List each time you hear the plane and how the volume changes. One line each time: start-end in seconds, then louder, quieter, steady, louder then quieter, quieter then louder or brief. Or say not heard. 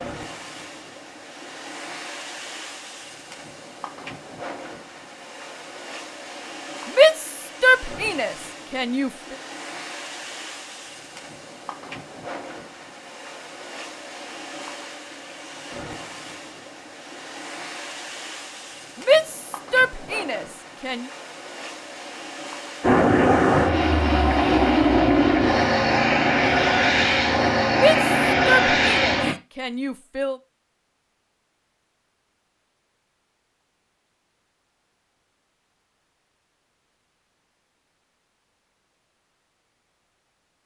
22.8-29.4 steady.